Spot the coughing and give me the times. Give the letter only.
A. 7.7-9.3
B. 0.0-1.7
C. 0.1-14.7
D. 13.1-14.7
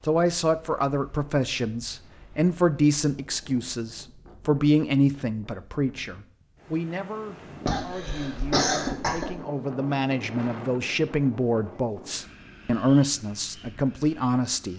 A.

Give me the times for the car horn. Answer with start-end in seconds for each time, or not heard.
not heard.